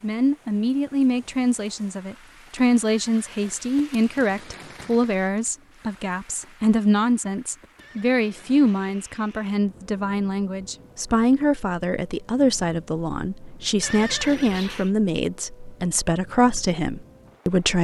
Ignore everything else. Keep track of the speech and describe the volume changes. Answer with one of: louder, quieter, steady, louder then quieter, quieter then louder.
steady.